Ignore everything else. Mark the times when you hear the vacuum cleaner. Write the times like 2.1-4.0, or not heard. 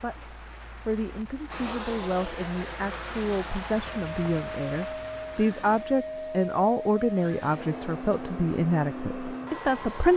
1.5-10.1.